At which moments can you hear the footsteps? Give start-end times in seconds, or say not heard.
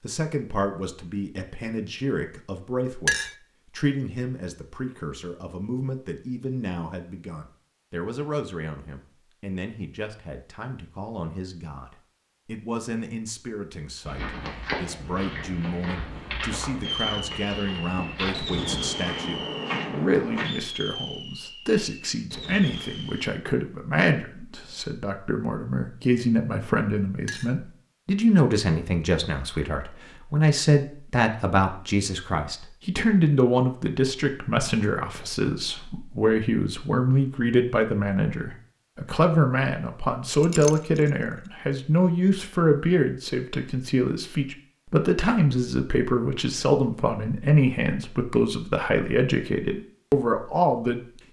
14.1-20.4.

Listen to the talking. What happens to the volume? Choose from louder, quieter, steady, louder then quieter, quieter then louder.
louder.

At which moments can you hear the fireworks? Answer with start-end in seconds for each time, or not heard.
16.8-23.4.